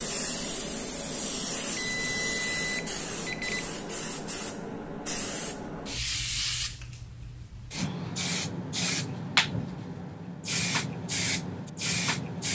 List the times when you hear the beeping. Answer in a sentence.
You can hear the beeping from 1.8 to 3.7 s.